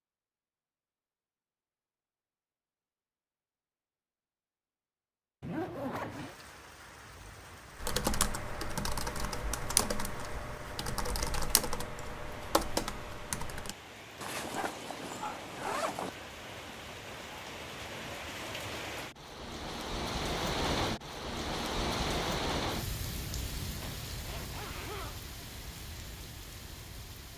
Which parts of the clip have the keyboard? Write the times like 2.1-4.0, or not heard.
7.8-13.8.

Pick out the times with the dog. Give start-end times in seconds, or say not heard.
14.5-15.9.